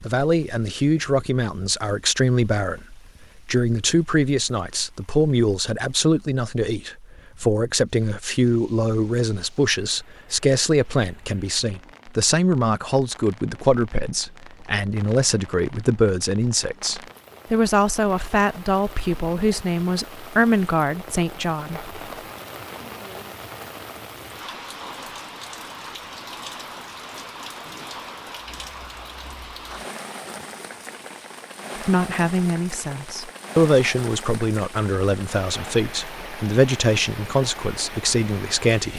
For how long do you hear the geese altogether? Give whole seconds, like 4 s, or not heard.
not heard.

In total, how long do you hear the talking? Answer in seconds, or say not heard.
29 s.